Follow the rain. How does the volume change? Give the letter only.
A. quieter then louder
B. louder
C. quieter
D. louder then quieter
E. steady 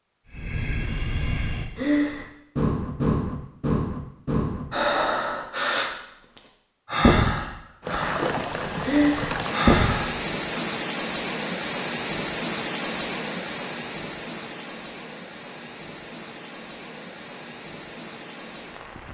C.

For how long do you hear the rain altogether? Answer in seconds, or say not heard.
11 s.